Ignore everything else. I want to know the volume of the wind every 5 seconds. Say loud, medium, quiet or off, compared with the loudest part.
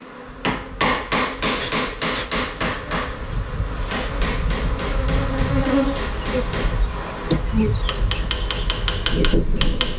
medium, loud.